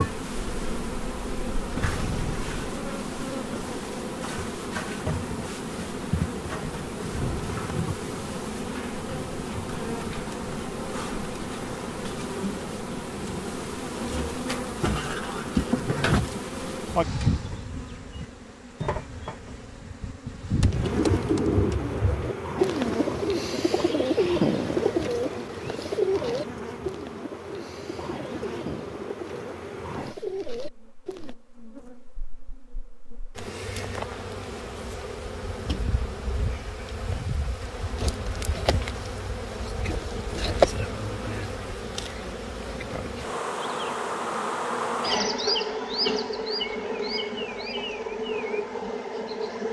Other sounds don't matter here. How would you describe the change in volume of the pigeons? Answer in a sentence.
The loudness of the pigeons goes down.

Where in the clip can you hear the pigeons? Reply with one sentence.
The pigeons can be heard from 20.6 to 31.4 s.